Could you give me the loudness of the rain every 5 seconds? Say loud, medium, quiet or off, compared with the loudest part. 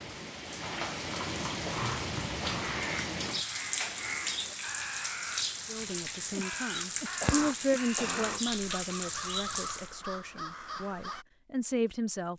loud, loud, off.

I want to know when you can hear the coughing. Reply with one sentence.
The coughing can be heard from 1.6 to 2.9 s and from 7.2 to 8.4 s.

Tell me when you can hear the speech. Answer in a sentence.
The speech can be heard from 5.7 to 12.3 s.